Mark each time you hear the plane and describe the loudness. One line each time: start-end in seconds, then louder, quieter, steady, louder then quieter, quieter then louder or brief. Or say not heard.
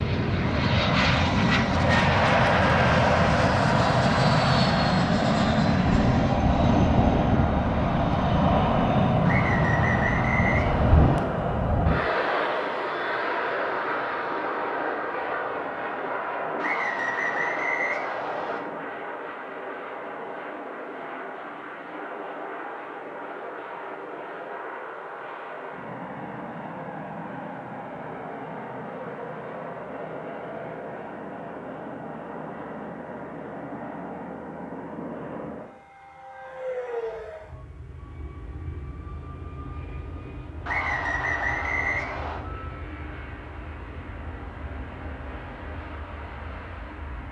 0.0-47.2 quieter.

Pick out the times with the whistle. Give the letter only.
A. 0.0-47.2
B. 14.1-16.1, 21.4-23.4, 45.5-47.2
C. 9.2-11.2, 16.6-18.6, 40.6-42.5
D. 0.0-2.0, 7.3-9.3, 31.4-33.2
C.